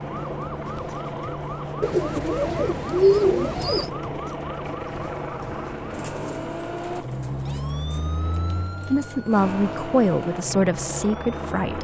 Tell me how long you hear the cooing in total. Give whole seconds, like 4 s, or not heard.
4 s.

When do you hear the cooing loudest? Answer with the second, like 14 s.
3 s.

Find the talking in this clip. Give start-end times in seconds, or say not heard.
8.9-11.7.